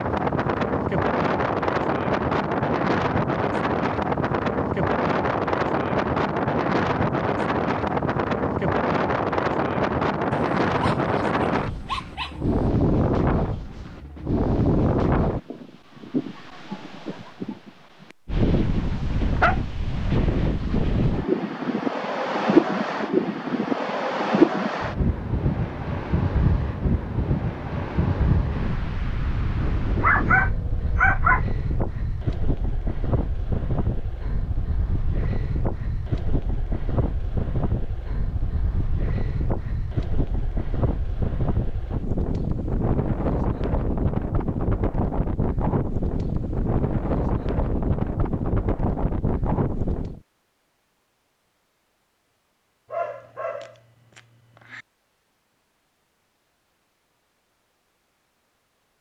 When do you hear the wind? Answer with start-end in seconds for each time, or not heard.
0.0-50.2.